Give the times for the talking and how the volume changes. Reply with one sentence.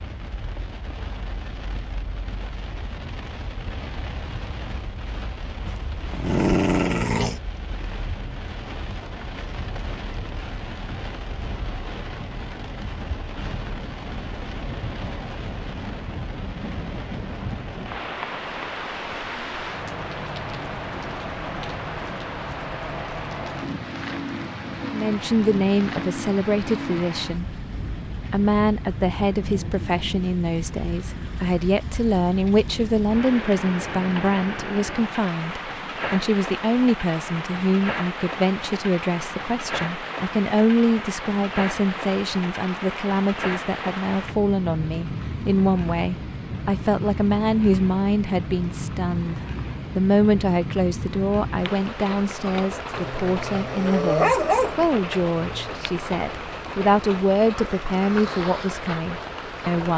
The talking can be heard briefly from 24.8 to 27.6 s; and from 28.3 to 59.9 s, at a steady volume.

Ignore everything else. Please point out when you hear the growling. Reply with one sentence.
You can hear the growling from 5.7 to 7.4 s and from 53.0 to 55.7 s.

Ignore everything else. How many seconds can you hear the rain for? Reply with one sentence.
You can hear the rain for 60 seconds altogether.